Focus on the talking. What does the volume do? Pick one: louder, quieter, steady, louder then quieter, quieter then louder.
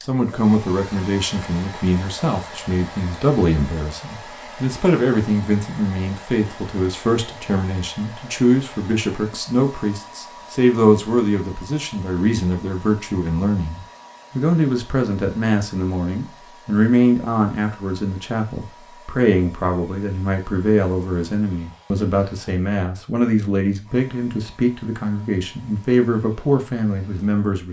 steady.